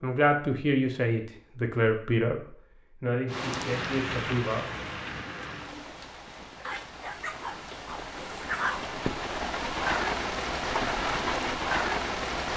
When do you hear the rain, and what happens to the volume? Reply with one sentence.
The rain can be heard from 3.2 to 12.5 s, getting quieter then louder.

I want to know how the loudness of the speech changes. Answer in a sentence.
The volume of the speech goes down.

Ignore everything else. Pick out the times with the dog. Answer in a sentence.
The dog can be heard from 6.6 to 8.9 s.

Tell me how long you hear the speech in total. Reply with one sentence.
You can hear the speech for 5 seconds altogether.